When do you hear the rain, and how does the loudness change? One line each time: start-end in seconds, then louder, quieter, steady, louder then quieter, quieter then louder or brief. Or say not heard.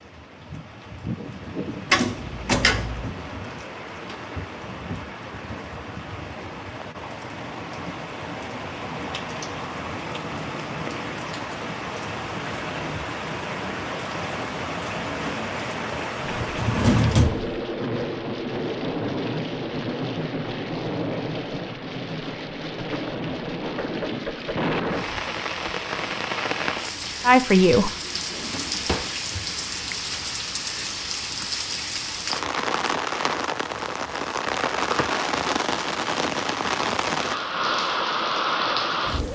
0.0-39.3 louder.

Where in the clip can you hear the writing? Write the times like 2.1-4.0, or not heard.
not heard.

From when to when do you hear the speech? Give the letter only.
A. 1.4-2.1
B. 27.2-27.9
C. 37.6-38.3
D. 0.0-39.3
B.